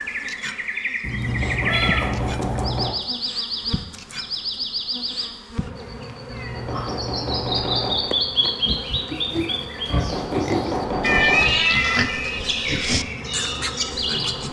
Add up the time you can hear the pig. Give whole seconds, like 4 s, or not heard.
6 s.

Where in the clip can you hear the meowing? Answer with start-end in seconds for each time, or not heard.
1.0-2.9, 6.2-8.0, 11.0-12.4.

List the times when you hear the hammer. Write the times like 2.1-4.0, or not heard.
1.2-3.0, 6.5-8.2, 9.9-11.6.